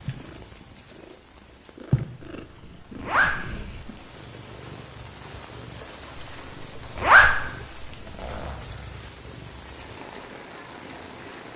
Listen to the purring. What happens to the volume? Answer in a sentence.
The volume of the purring goes down.